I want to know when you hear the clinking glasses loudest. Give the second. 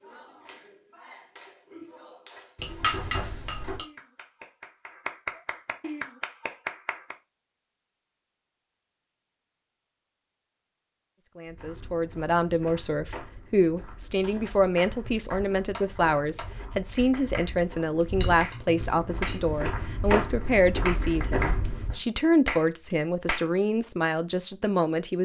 3 s.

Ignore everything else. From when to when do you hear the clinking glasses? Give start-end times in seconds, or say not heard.
2.5-3.9, 18.1-19.4.